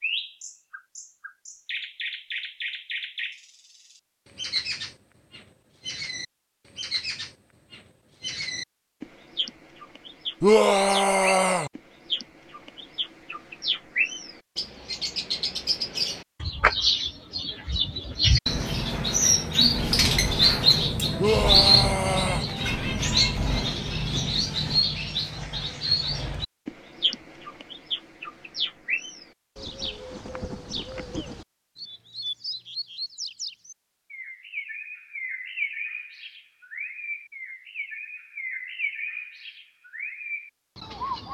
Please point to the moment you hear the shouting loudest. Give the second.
11 s.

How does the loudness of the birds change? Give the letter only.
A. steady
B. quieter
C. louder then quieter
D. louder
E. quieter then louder
C.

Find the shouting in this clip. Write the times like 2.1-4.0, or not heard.
10.4-11.7, 21.1-22.4.